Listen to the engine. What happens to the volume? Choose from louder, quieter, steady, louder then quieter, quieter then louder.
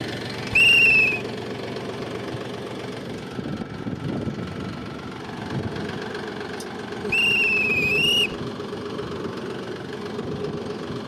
steady.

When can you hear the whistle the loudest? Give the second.
1 s.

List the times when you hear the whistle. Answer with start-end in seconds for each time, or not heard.
0.5-1.2, 7.1-8.3.